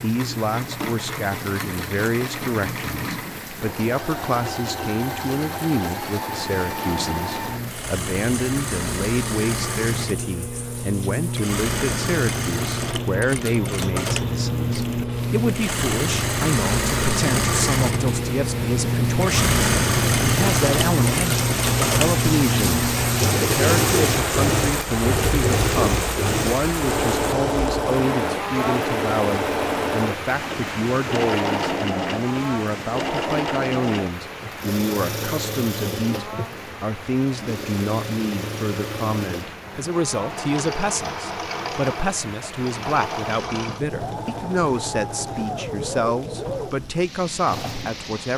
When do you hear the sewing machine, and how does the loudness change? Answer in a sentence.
You can hear the sewing machine from 0.0 to 48.3 s, getting louder then quieter.